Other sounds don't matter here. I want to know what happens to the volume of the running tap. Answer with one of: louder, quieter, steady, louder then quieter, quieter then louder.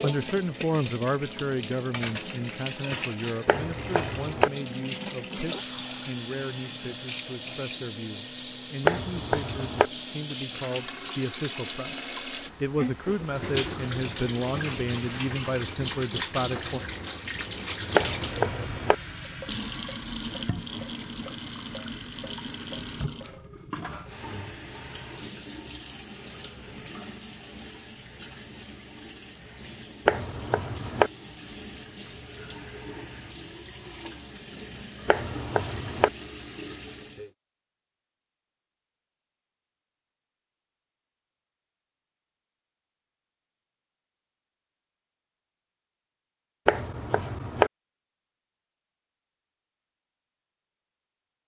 quieter.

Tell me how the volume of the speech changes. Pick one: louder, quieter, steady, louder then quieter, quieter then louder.
quieter then louder.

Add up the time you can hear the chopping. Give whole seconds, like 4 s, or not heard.
6 s.